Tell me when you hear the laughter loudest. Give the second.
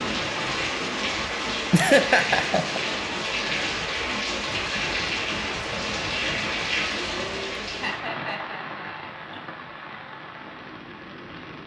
2 s.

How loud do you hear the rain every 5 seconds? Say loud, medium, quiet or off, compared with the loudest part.
loud, loud, quiet.